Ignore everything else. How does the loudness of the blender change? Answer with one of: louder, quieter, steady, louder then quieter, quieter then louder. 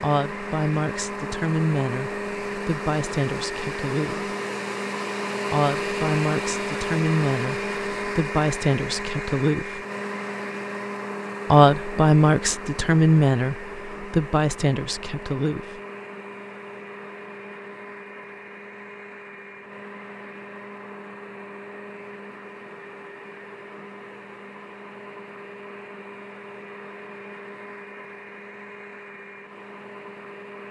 quieter.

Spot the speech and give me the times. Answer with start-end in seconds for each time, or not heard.
0.0-4.3, 5.5-9.8, 11.5-15.8.